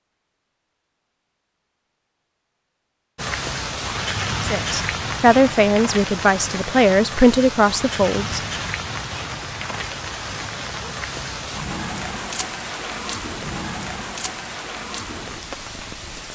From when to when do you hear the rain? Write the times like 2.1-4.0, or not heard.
3.1-16.3.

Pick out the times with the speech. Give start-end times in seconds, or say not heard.
4.4-8.4.